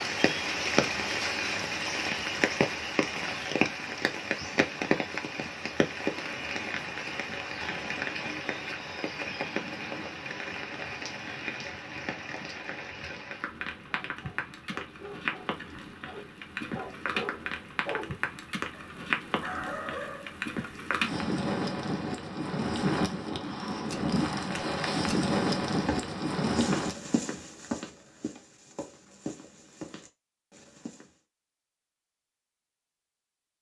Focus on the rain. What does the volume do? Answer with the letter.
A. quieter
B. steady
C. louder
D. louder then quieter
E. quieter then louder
E.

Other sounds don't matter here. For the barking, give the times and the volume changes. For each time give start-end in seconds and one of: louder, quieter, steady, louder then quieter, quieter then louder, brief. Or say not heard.
13.8-20.4 louder.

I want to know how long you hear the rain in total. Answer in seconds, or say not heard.
27 s.